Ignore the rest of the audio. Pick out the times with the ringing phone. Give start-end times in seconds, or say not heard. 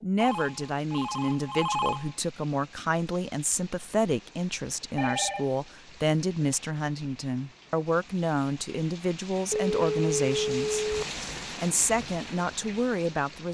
0.2-2.1, 5.0-5.6, 9.5-11.1.